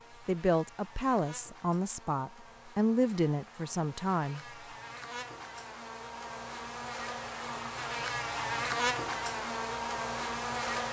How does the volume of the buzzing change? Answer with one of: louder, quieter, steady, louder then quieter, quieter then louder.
louder.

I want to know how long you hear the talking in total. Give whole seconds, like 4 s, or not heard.
4 s.